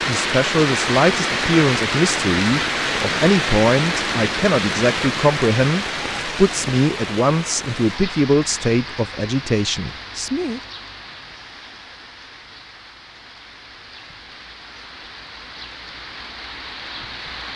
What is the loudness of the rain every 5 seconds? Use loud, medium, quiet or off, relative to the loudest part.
loud, medium, quiet, quiet.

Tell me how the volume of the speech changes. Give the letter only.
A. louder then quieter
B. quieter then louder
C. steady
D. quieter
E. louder
C.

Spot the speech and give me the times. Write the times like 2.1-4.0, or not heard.
0.1-10.6.